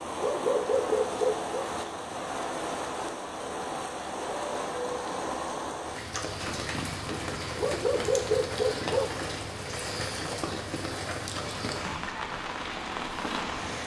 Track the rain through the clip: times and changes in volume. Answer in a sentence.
You can hear the rain from 0.0 to 13.8 s, at a steady volume.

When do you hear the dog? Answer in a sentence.
You can hear the dog from 0.2 to 1.6 s and from 7.6 to 9.1 s.